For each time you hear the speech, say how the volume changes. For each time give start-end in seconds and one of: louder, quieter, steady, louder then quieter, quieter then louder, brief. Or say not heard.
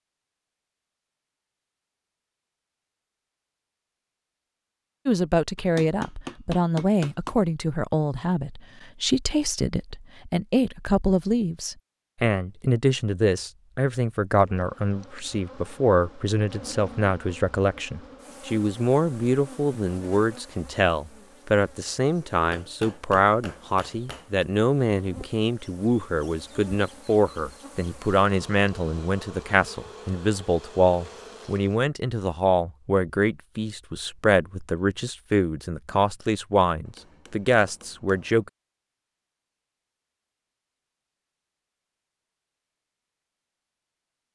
5.0-38.5 steady.